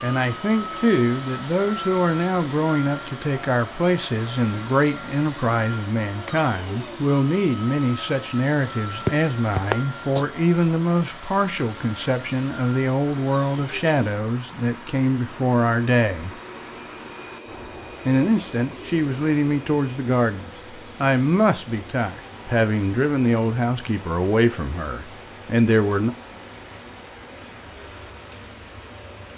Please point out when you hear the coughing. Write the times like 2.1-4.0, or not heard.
9.1-10.2.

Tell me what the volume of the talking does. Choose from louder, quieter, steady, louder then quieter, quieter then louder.
steady.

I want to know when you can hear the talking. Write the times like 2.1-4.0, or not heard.
0.0-16.3, 18.1-26.1.